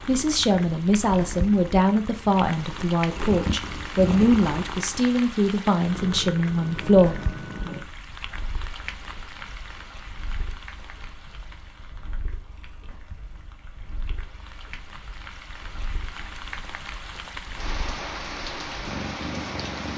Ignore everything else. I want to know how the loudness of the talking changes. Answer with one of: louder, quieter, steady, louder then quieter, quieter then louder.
steady.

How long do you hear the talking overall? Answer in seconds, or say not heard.
7 s.